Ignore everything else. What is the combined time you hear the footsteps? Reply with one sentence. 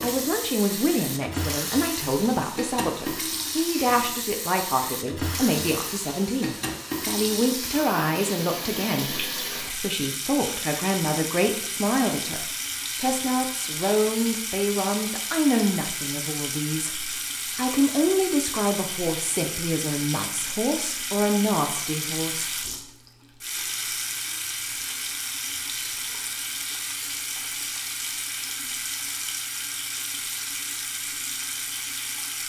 The footsteps can't be heard in this clip.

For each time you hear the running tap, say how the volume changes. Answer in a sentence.
The running tap can be heard from 0.0 to 32.4 s, at a steady volume.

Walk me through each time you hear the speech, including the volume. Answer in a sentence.
The speech can be heard from 0.0 to 22.4 s, at a steady volume.